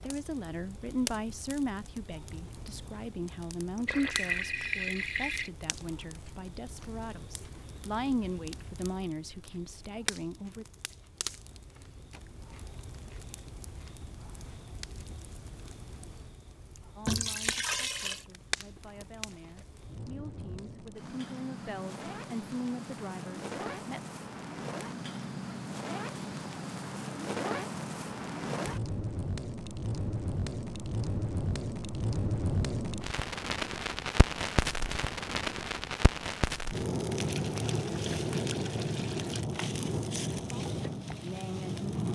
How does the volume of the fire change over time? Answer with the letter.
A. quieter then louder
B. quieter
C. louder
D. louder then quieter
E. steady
C.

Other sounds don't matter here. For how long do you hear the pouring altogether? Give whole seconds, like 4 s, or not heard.
5 s.